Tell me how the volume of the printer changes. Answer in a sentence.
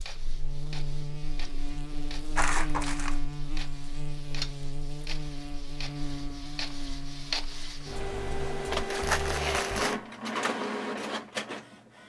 The loudness of the printer goes up.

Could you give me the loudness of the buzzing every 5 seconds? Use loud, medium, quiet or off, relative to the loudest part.
loud, loud, off.